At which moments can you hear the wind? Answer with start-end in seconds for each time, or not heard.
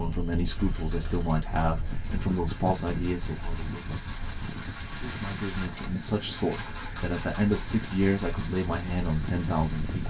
0.0-10.0.